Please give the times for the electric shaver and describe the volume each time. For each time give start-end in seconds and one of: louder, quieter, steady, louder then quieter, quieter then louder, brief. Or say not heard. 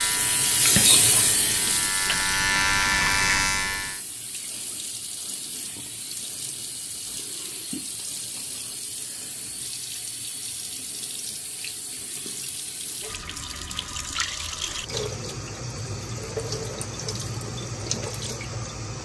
0.0-4.0 louder.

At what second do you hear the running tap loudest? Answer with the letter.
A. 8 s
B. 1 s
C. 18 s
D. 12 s
B.